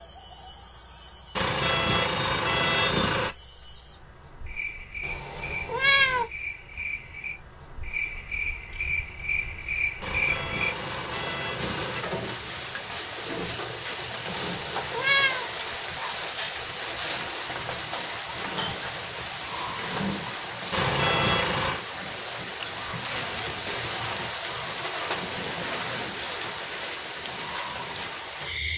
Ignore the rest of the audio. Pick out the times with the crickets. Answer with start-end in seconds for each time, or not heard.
0.0-28.7.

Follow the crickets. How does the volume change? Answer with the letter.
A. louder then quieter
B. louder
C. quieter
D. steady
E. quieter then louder
B.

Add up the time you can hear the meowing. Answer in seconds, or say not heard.
3 s.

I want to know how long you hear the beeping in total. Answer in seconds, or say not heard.
5 s.